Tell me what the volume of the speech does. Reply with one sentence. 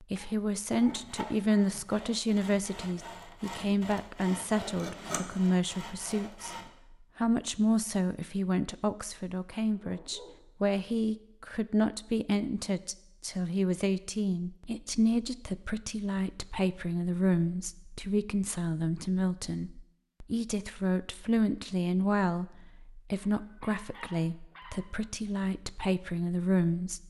The loudness of the speech stays about the same.